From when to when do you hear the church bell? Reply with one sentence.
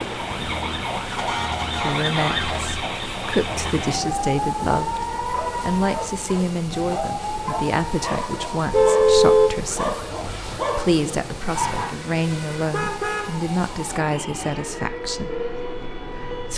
The church bell can't be heard in this clip.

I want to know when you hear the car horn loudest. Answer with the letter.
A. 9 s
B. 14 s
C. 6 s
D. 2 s
A.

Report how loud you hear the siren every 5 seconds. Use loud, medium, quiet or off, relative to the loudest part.
loud, loud, medium, medium.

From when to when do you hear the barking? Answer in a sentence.
The barking can be heard from 5.3 to 11.8 s.